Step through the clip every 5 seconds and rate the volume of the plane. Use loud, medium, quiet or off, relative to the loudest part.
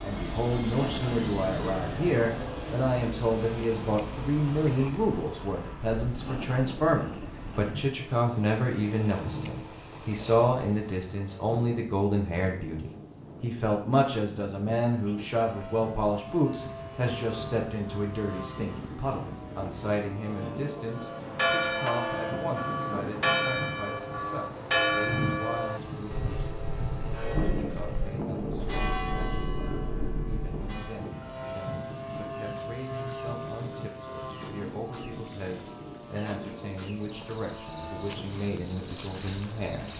loud, medium, medium, medium, loud, loud, loud, medium.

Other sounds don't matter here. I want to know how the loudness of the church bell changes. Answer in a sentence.
The volume of the church bell goes down.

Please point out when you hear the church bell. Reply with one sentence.
You can hear the church bell from 20.9 to 31.0 s.